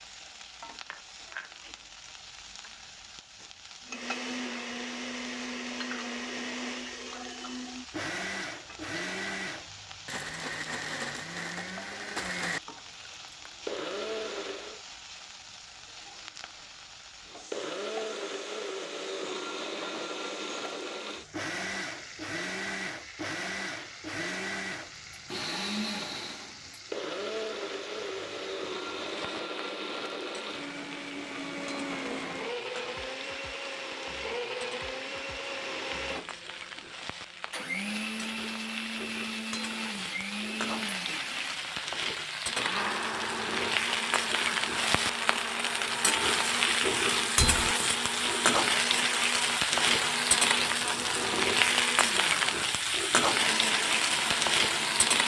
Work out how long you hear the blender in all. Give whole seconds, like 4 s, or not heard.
49 s.